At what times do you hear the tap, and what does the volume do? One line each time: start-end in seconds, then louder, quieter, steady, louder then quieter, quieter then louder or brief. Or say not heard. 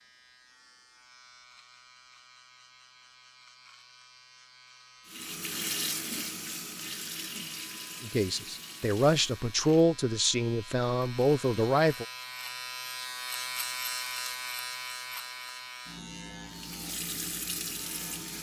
5.0-9.5 quieter
16.5-18.3 brief.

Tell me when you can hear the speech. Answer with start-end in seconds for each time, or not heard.
8.0-12.1.